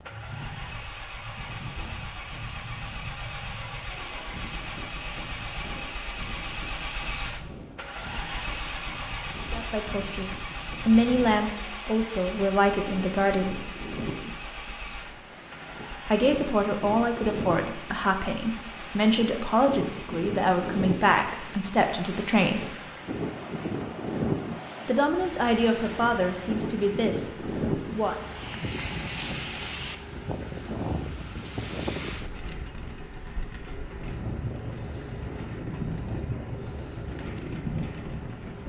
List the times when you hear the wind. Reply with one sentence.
You can hear the wind from 0.0 to 38.6 s.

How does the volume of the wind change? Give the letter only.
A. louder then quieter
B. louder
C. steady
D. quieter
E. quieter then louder
B.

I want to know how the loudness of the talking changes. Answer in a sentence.
The volume of the talking stays about the same.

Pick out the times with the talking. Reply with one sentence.
You can hear the talking from 9.5 to 13.7 s, from 16.1 to 22.7 s and from 24.9 to 28.1 s.